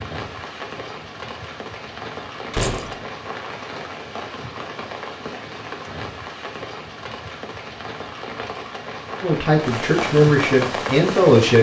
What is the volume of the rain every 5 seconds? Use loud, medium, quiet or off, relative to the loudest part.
medium, medium, loud.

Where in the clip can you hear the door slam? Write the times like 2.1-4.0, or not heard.
2.5-3.0.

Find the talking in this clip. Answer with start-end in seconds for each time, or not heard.
9.2-11.5.